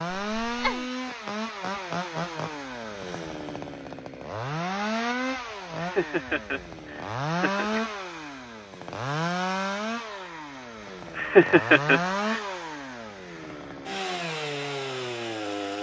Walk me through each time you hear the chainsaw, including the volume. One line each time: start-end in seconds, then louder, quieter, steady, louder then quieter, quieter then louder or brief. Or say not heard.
0.0-15.7 steady.